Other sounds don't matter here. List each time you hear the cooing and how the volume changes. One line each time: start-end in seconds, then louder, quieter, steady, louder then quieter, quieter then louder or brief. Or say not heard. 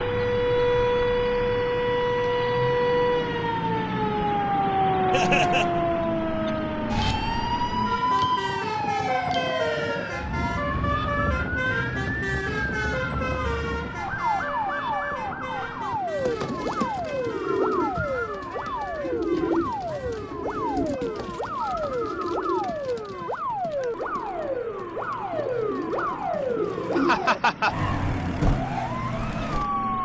16.1-27.2 quieter then louder.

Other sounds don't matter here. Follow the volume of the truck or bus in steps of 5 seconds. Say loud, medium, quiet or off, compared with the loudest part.
loud, loud, loud, medium, quiet, medium.